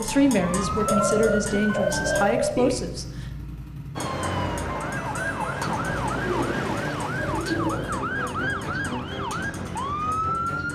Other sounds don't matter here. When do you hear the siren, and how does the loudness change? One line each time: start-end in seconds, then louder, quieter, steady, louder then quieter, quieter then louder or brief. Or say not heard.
0.0-2.2 brief
4.0-10.7 steady.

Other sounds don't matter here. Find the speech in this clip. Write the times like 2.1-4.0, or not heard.
0.0-3.2.